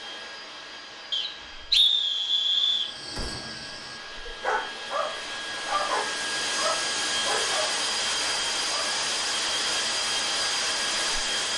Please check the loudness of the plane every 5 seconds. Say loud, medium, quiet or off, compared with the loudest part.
quiet, loud, loud.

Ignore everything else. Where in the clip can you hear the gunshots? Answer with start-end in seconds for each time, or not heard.
3.1-3.6.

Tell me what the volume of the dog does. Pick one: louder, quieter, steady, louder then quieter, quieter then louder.
louder.